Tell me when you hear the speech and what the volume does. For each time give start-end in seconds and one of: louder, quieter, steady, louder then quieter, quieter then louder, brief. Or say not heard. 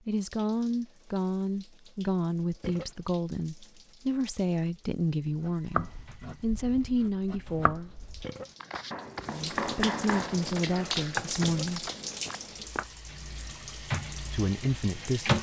0.1-7.9 steady
9.2-11.9 brief
14.2-15.3 brief.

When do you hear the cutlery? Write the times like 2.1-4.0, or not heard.
not heard.